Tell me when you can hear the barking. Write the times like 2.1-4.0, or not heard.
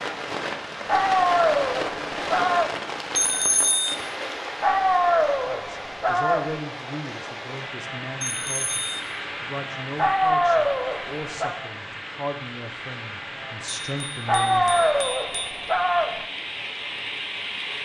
0.8-2.7, 4.6-6.6, 9.9-11.6, 14.2-16.2.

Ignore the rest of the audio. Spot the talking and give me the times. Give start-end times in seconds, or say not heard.
5.5-14.8.